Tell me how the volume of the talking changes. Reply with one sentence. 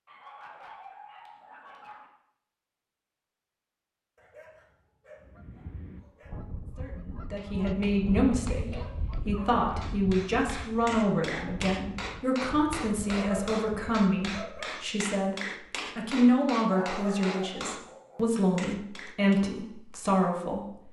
The volume of the talking stays about the same.